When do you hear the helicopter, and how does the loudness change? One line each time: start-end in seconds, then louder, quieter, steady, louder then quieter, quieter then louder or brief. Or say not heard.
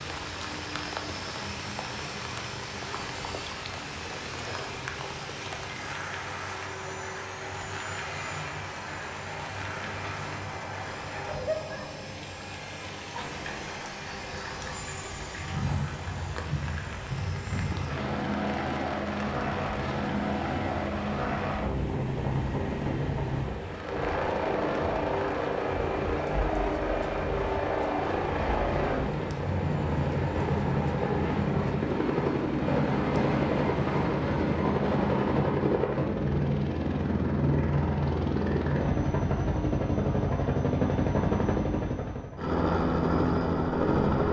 0.2-44.2 louder.